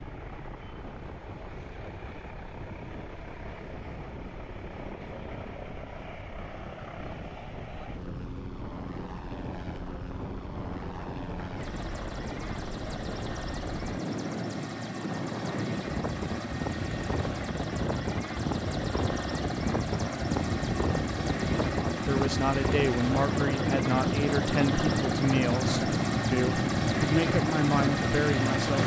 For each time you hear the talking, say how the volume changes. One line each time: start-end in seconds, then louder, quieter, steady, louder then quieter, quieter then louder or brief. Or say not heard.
21.9-28.8 steady.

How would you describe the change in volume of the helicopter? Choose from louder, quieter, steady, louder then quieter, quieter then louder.
louder.